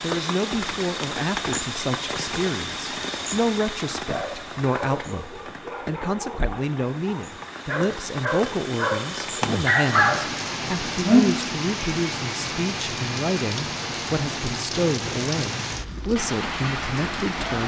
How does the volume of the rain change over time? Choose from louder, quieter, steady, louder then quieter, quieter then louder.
quieter then louder.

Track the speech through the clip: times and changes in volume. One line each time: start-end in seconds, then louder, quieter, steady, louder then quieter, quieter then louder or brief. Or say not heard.
0.0-17.6 steady.